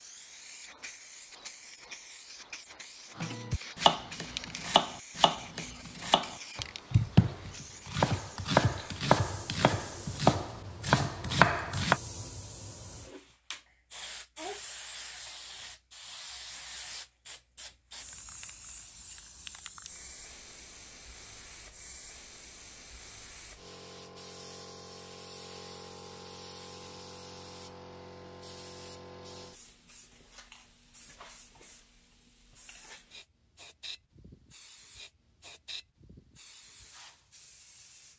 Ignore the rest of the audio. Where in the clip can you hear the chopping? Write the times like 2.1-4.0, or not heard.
3.1-12.0.